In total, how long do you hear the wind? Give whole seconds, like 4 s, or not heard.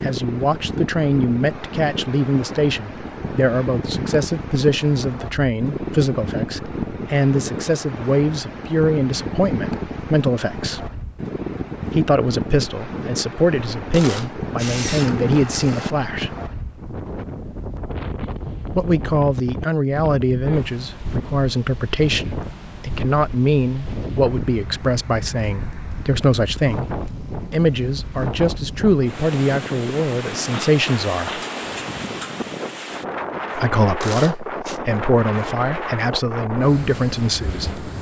38 s.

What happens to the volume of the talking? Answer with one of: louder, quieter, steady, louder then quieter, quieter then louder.
steady.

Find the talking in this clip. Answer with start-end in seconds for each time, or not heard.
0.0-10.9, 11.9-16.4, 18.8-31.4, 33.5-37.8.